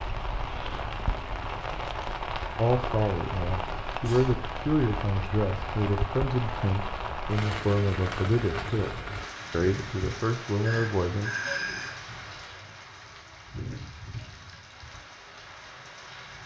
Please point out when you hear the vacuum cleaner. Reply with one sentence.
The vacuum cleaner can't be heard in this clip.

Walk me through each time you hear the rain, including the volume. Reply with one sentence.
You can hear the rain from 0.0 to 16.4 s, getting quieter.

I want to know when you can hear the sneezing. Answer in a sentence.
You can hear the sneezing from 3.9 to 4.4 s and from 10.6 to 11.9 s.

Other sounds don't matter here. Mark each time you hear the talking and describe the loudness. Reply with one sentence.
The talking can be heard from 2.5 to 11.3 s, at a steady volume.